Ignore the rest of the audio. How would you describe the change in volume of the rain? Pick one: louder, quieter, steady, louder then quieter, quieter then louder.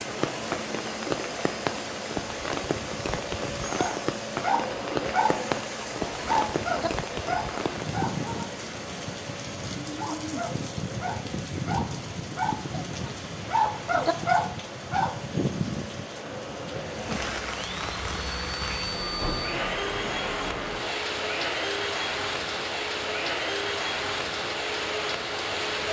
steady.